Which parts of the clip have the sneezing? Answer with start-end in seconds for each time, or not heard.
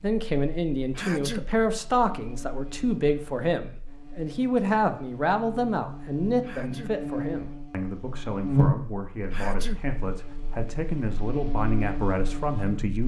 0.9-1.4, 6.4-7.0, 9.3-9.8.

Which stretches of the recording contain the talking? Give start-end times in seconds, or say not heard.
0.0-13.0.